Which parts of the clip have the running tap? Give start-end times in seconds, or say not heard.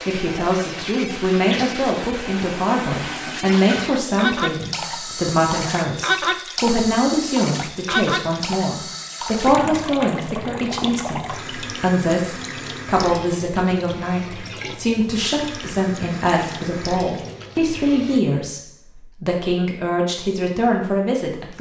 0.0-18.2.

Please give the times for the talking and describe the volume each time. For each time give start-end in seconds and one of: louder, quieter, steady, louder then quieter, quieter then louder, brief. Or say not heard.
0.1-21.5 steady.